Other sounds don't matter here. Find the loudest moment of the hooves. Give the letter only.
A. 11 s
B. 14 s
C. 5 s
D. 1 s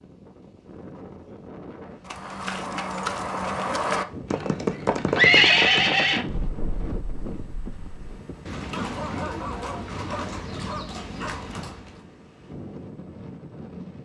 C.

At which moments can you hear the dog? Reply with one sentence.
You can hear the dog from 8.7 to 11.5 s.